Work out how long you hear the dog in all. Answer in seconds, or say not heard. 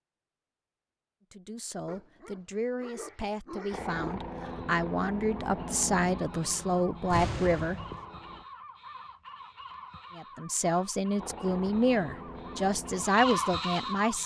2 s.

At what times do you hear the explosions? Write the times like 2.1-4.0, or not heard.
7.1-8.1.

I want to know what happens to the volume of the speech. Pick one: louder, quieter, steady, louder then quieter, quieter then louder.
louder.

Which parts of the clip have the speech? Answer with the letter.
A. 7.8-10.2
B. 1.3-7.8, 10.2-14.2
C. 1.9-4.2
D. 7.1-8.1
B.